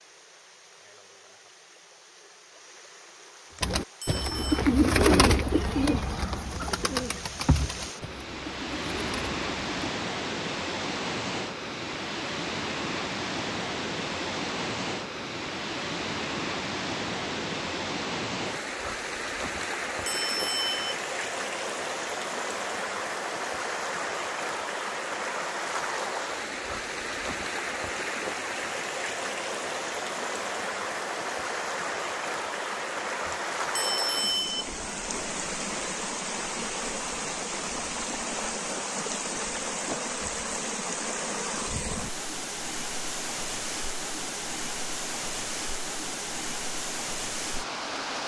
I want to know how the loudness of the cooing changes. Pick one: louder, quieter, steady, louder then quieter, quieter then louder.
quieter.